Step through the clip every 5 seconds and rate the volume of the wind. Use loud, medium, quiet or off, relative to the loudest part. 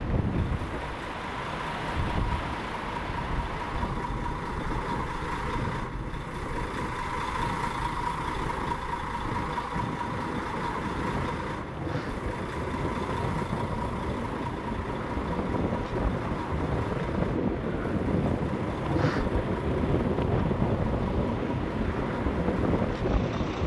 medium, medium, medium, loud, loud.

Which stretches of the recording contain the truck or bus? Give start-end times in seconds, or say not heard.
0.0-23.6.